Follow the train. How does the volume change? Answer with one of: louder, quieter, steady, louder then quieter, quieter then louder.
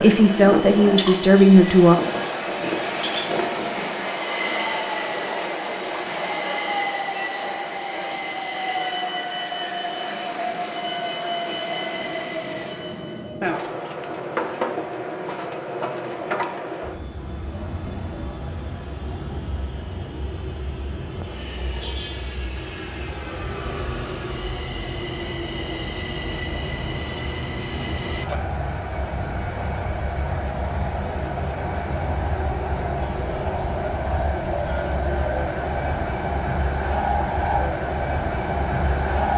quieter then louder.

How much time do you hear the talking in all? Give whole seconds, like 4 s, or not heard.
2 s.